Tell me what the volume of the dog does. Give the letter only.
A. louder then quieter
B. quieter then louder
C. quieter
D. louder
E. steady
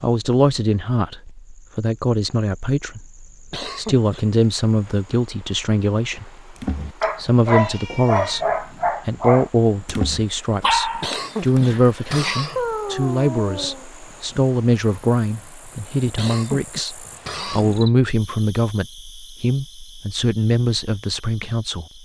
B.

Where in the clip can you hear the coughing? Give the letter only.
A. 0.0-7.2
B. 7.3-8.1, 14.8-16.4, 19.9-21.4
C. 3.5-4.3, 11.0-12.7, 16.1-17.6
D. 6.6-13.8
C.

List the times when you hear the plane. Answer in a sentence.
The plane can't be heard in this clip.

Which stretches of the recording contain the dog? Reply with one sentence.
The dog can be heard from 6.6 to 13.8 s.